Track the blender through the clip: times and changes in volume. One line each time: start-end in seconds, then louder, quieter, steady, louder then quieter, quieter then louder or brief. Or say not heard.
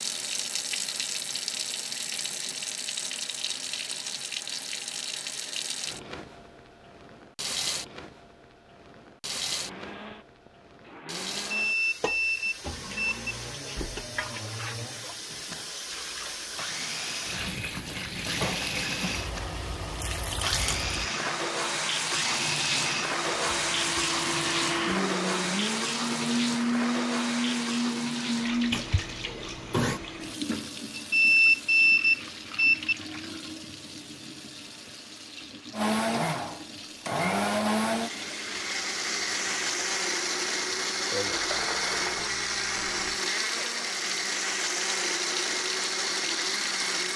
9.6-30.0 louder
35.7-47.1 steady.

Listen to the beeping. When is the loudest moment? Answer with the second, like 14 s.
31 s.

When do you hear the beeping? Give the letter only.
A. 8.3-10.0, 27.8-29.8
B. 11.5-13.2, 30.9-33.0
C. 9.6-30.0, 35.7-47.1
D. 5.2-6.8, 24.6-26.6
B.